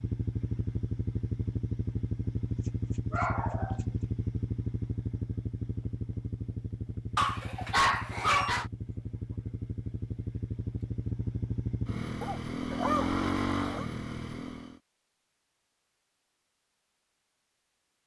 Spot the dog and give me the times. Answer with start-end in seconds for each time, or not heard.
3.1-3.8, 7.2-8.7, 12.2-13.8.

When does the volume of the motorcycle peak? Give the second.
13 s.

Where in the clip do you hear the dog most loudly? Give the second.
8 s.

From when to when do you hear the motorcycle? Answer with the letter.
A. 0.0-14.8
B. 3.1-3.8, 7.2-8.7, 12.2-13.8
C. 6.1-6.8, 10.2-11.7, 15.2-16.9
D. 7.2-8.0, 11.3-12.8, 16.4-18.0
A.